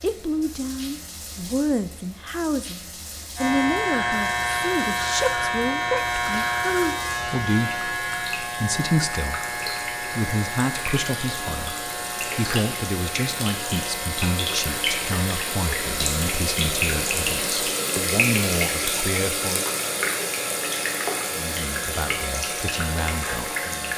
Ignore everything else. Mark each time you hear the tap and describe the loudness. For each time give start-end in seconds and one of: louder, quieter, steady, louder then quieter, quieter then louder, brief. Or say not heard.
0.0-23.9 louder.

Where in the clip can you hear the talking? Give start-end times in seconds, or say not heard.
0.0-19.6, 21.3-23.9.